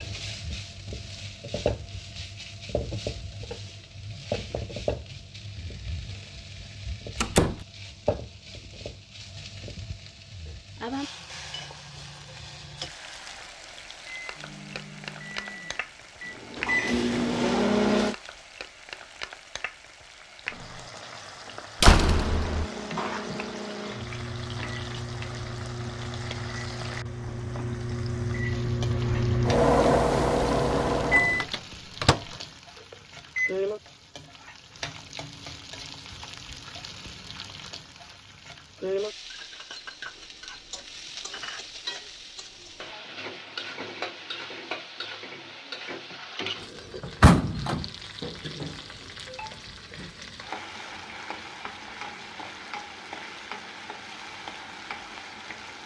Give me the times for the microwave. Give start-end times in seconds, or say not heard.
14.1-18.1, 22.1-33.5.